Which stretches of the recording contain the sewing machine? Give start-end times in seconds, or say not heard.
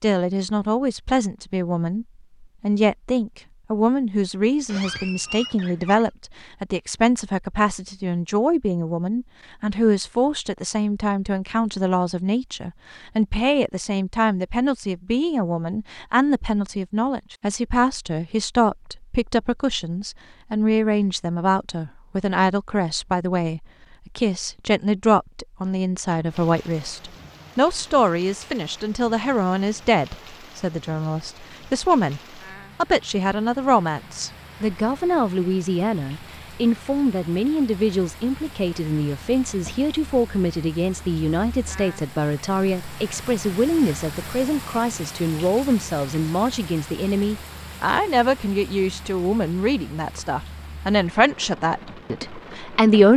not heard.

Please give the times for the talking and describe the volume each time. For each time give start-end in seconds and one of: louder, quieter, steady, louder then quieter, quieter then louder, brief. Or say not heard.
0.0-53.1 steady.